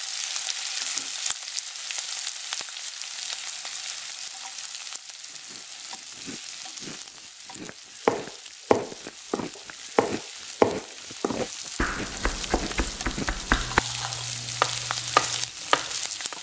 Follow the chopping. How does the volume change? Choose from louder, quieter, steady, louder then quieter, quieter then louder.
quieter then louder.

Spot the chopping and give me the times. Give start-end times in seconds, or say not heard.
8.1-16.3.